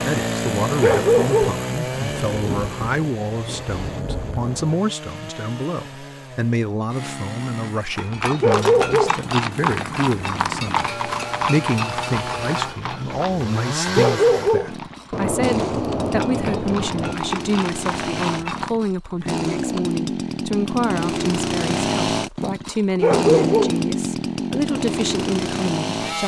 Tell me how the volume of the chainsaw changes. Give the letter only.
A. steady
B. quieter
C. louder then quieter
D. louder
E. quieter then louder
E.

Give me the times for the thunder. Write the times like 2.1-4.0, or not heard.
1.9-4.8, 15.1-17.1.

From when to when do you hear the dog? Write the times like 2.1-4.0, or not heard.
0.8-1.6, 8.4-9.2, 13.9-14.8, 23.0-23.8.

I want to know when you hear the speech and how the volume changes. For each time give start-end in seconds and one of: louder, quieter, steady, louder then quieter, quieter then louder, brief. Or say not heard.
0.0-26.2 steady.